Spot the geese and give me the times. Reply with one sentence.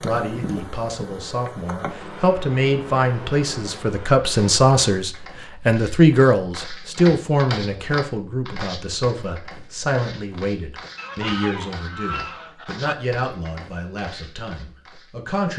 You can hear the geese from 10.9 to 12.9 s.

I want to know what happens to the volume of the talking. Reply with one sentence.
The loudness of the talking goes up, then down.